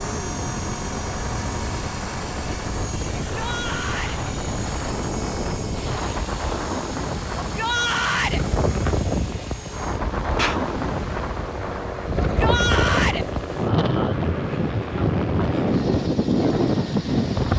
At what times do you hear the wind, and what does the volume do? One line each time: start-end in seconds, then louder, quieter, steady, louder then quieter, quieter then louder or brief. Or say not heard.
0.0-17.5 louder.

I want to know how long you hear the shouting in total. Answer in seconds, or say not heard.
3 s.